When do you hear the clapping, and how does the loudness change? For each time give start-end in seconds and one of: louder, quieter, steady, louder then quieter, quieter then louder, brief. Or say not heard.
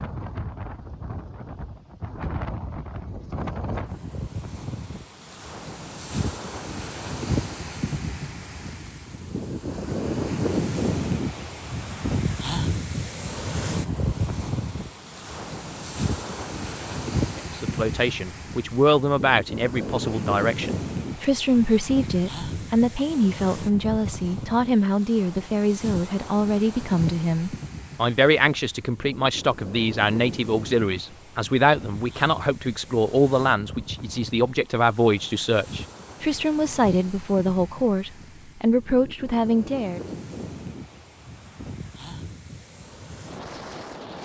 not heard.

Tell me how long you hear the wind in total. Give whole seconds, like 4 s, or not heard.
44 s.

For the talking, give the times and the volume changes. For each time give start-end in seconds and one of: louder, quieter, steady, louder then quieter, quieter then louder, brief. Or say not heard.
17.4-40.0 steady.